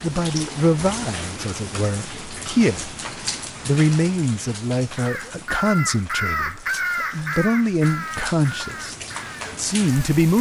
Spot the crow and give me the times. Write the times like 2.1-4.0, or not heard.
5.0-10.1.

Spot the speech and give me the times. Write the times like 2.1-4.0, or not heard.
0.0-3.0, 3.6-8.9, 9.6-10.3.